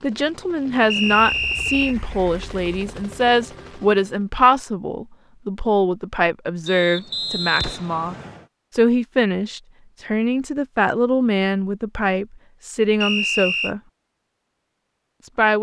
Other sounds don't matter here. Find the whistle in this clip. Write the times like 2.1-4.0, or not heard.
0.9-1.9, 6.7-8.4, 13.0-13.7.